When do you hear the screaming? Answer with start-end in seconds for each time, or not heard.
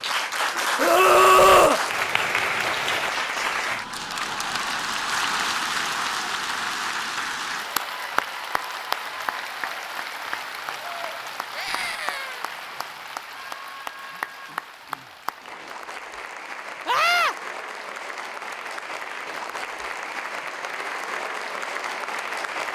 0.8-1.8, 11.6-12.4, 16.9-17.4.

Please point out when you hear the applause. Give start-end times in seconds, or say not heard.
0.0-22.7.